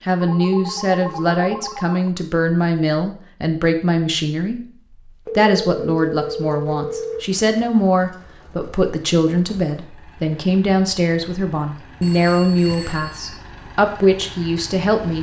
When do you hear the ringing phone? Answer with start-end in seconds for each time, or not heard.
0.2-2.1, 5.2-7.2, 12.0-13.4.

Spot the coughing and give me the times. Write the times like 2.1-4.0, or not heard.
not heard.